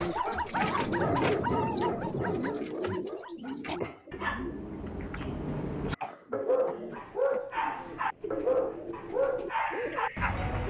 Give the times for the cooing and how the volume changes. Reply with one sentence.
You can hear the cooing from 0.0 to 10.6 s, getting quieter then louder.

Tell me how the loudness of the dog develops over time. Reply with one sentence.
The volume of the dog goes down, then up.